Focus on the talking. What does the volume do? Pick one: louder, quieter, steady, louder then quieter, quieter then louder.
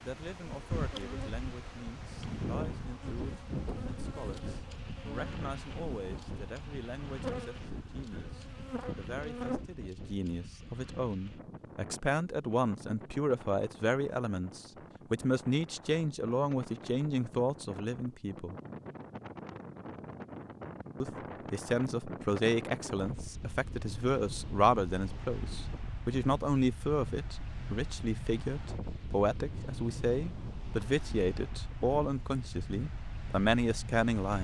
louder.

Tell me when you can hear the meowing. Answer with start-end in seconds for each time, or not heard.
not heard.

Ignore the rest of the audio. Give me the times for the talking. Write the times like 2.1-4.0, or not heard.
0.0-18.6, 21.0-34.3.